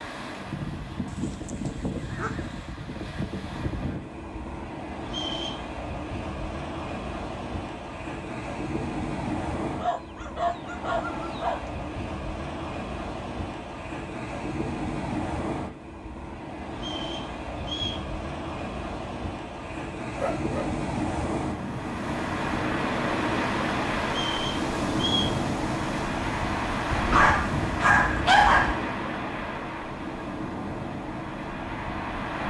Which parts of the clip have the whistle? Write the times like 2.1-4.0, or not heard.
5.0-5.7, 16.8-18.1, 24.1-25.4.